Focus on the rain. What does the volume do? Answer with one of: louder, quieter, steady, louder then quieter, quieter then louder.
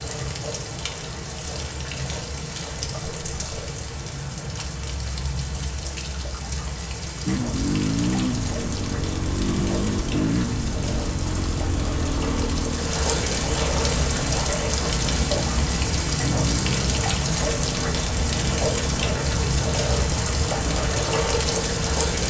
louder.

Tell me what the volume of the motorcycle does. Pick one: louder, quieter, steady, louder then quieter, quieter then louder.
quieter.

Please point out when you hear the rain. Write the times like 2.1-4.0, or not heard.
0.0-22.2.